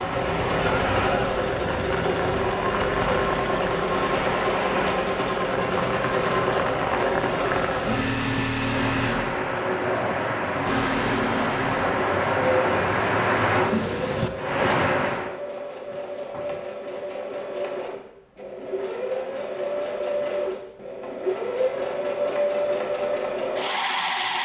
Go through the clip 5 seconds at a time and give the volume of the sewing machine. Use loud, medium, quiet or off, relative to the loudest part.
loud, loud, medium, medium, loud.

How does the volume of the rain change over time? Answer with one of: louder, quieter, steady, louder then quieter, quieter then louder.
louder.